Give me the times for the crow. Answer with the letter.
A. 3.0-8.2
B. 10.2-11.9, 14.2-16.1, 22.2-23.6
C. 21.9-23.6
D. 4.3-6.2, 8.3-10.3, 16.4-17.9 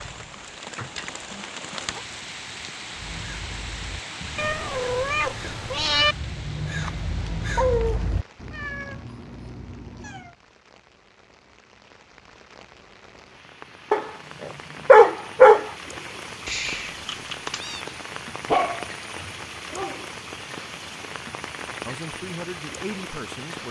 A.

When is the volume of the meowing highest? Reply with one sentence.
The volume of the meowing peaks at 6 seconds.